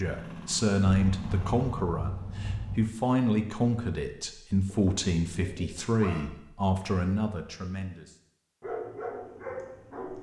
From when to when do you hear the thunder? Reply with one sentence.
The thunder can be heard from 0.8 to 2.9 s.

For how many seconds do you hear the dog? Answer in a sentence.
You can hear the dog for 3 seconds altogether.